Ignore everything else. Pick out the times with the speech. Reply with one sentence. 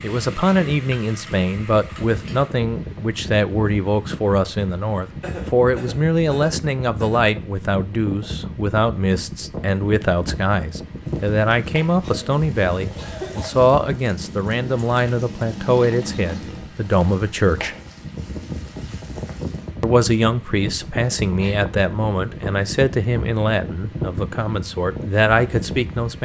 The speech can be heard from 0.0 to 17.8 s and from 19.8 to 26.2 s.